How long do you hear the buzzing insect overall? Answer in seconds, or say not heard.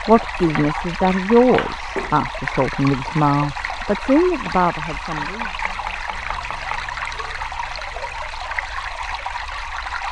not heard.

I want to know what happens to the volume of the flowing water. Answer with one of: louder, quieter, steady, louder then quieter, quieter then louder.
steady.